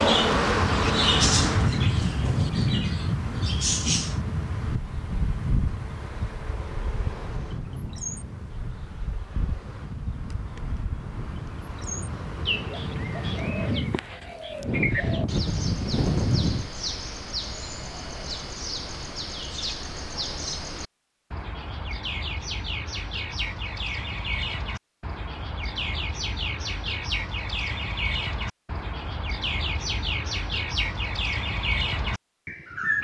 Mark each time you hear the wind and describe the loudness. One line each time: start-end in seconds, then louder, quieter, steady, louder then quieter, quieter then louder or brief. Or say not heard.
0.0-16.7 quieter then louder.